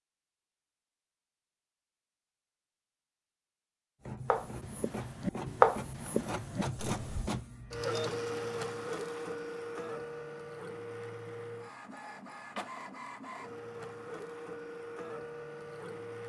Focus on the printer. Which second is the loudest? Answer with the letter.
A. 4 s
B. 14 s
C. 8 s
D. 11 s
C.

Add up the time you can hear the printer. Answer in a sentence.
You can hear the printer for 12 seconds altogether.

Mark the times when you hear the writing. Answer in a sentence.
The writing can be heard from 4.2 to 7.3 s.